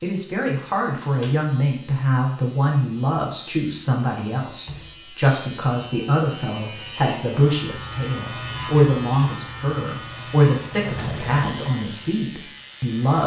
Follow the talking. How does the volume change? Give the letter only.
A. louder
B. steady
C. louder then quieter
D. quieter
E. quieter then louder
B.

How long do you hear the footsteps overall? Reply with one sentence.
You can't hear the footsteps here.